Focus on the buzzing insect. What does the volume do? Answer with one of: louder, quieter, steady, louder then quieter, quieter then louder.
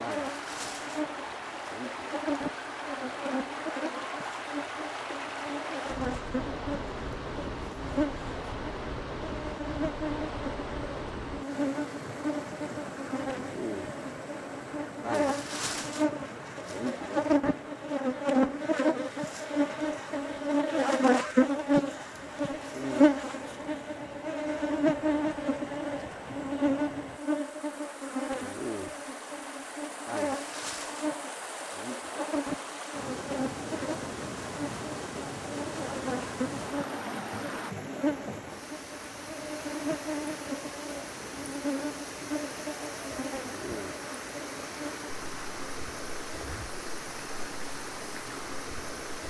louder then quieter.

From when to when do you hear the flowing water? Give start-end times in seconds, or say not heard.
0.0-49.2.